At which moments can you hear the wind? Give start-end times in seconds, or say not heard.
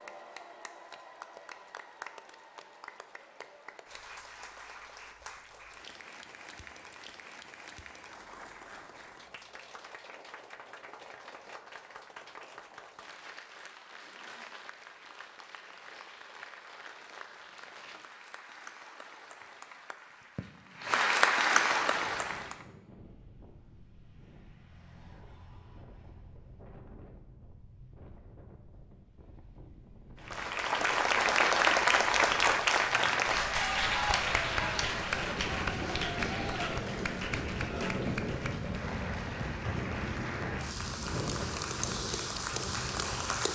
21.8-43.5.